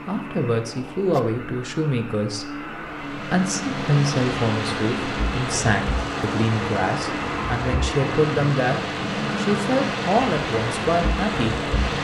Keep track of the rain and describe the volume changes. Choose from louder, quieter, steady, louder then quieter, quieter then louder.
steady.